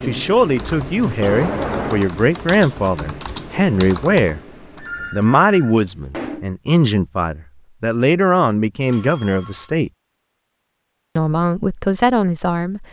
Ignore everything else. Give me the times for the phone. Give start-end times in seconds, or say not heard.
1.2-2.1, 4.8-6.5, 8.8-9.8.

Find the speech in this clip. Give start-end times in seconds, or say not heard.
0.1-4.4, 5.1-9.9, 11.2-12.8.